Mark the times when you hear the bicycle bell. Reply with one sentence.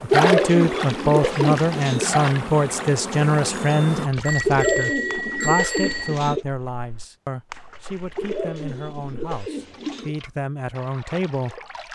You can hear the bicycle bell from 3.5 to 6.2 s.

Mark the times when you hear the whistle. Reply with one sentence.
You can't hear the whistle here.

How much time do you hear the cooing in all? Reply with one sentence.
You can hear the cooing for 6 seconds altogether.